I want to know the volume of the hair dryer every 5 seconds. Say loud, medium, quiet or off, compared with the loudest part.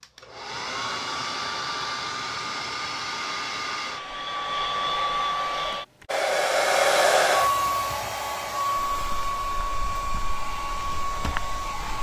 medium, loud, medium.